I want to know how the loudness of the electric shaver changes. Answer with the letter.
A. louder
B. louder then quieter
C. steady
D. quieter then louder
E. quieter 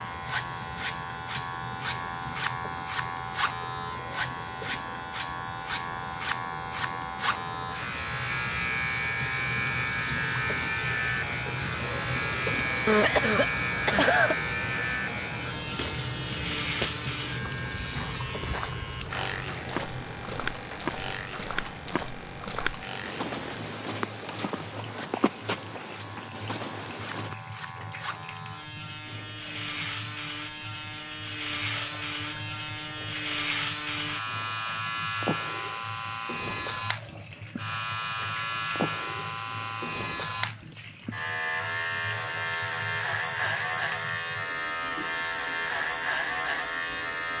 D.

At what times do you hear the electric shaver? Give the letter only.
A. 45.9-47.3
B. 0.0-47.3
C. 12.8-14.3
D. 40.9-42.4
B.